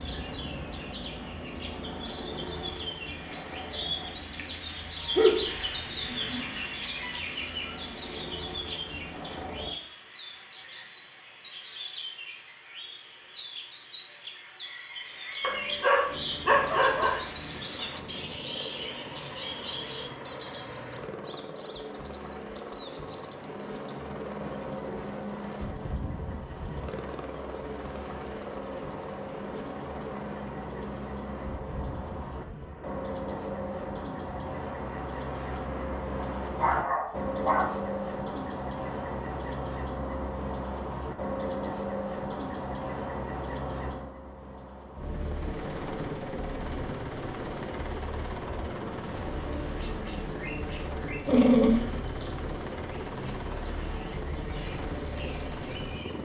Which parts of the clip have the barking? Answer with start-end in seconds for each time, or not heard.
5.2-6.6, 15.4-17.2, 36.5-37.7, 51.2-51.9.